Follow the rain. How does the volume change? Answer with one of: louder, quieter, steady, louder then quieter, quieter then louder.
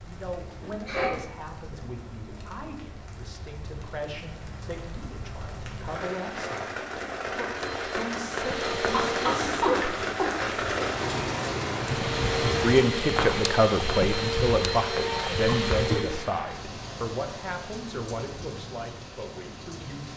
louder then quieter.